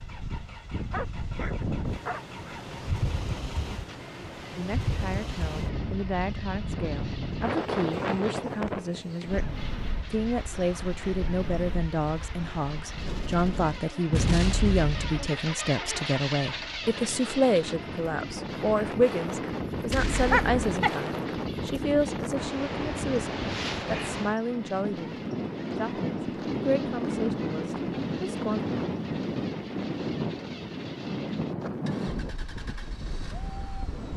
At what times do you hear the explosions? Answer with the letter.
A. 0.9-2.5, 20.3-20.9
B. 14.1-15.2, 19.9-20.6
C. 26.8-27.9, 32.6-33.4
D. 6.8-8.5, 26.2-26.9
B.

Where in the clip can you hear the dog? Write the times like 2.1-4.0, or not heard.
0.9-2.5, 20.3-20.9.